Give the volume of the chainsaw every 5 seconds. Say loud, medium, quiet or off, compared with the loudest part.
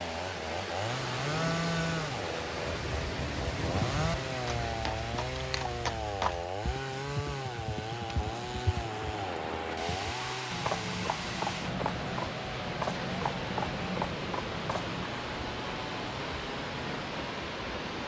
loud, loud, medium, medium.